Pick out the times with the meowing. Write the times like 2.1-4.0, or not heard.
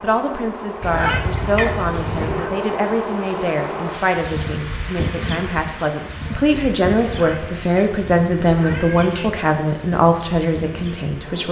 0.8-2.5, 7.1-9.4.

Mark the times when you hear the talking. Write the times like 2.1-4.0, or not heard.
0.0-11.4.